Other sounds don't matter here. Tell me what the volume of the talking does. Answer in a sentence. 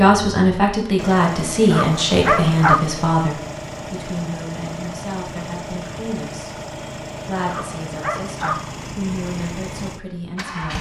The volume of the talking goes down.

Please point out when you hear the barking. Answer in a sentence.
The barking can be heard from 1.7 to 2.8 s and from 7.5 to 8.6 s.